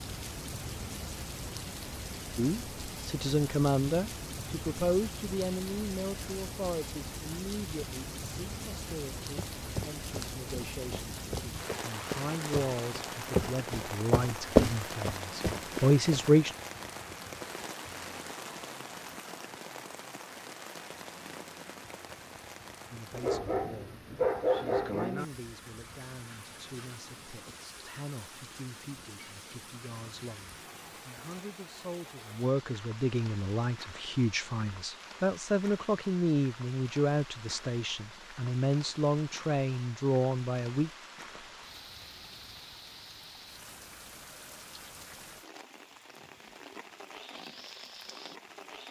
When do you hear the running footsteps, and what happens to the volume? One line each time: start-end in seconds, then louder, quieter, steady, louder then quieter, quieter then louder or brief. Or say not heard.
9.3-16.4 louder then quieter.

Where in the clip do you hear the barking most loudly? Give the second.
24 s.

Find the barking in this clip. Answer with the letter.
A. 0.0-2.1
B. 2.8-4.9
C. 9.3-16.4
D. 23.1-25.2
D.